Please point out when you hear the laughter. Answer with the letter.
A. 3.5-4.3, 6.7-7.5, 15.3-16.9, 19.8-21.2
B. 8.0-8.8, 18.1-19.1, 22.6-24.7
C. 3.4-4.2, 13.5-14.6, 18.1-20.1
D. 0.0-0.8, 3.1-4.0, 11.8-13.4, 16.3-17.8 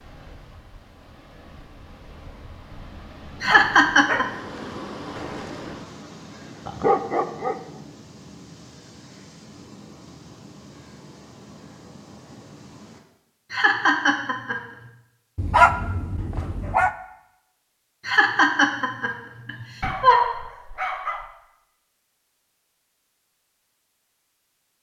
C.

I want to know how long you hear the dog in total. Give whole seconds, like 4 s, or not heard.
5 s.